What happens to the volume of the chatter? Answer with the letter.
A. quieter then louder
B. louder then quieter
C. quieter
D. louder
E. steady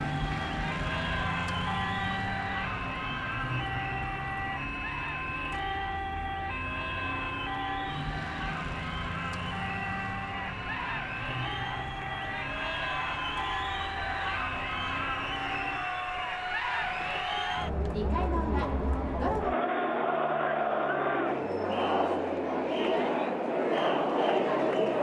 D.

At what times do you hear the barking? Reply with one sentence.
You can't hear the barking here.